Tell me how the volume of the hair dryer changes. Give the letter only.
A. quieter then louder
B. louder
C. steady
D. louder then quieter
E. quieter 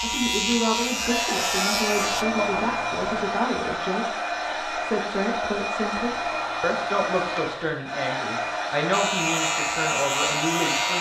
C.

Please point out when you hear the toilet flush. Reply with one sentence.
The toilet flush can be heard from 1.9 to 3.4 s and from 5.8 to 7.8 s.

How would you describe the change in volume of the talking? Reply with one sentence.
The loudness of the talking stays about the same.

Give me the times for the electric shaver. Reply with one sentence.
The electric shaver can be heard from 0.0 to 2.2 s and from 8.9 to 10.9 s.